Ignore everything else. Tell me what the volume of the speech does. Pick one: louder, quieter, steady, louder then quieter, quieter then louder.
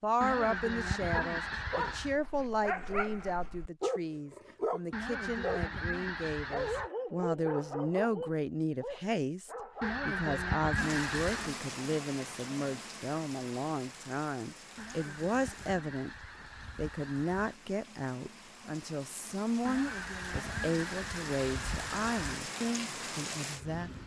steady.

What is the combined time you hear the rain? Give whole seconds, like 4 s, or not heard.
13 s.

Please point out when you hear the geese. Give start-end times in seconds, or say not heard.
0.2-2.1, 4.9-6.9, 9.8-11.6, 14.8-17.6, 19.6-22.4.